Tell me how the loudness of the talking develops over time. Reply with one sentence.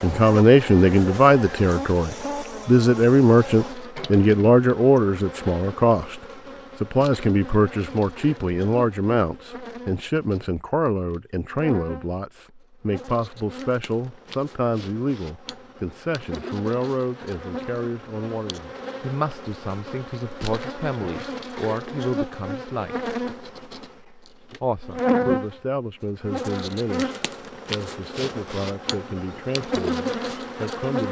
The loudness of the talking goes down.